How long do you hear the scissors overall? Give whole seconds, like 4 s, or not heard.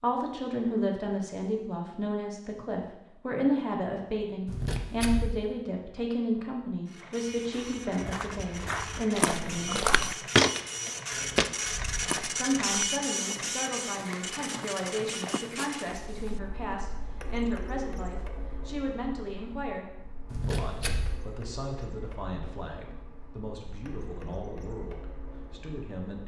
3 s.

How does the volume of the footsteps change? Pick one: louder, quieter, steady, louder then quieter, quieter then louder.
louder then quieter.